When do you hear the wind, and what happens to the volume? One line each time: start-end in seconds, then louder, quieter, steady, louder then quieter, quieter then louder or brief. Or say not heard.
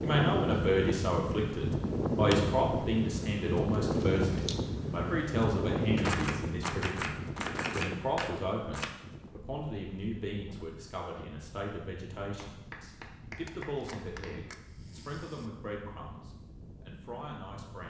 0.0-17.8 quieter.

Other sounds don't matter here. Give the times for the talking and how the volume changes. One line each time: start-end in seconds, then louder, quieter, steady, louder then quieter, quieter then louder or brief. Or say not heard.
0.0-17.8 quieter.